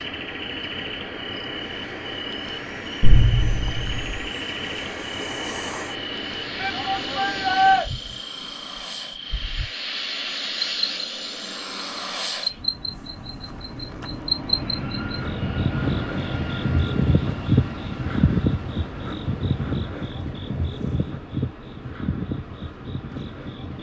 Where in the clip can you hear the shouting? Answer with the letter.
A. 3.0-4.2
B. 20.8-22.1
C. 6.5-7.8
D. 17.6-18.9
C.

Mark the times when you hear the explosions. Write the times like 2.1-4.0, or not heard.
3.0-4.2.